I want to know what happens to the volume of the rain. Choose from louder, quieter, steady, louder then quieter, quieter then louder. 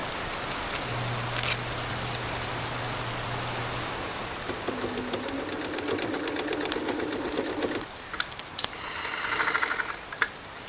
quieter.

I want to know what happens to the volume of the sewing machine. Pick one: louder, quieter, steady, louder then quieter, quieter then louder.
louder.